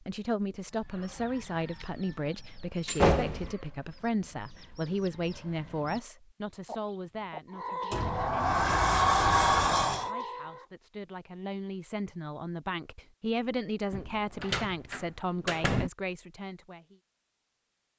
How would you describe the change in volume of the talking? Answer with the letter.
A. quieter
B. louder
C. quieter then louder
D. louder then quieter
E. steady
C.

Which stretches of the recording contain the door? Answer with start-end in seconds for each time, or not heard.
2.9-3.5, 7.9-10.1, 13.9-15.9.